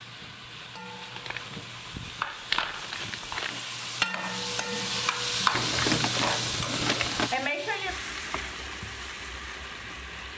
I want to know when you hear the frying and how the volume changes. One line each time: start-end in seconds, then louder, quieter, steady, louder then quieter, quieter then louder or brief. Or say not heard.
0.0-10.3 louder then quieter.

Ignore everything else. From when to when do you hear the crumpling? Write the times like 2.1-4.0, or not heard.
1.1-3.5, 5.5-7.3.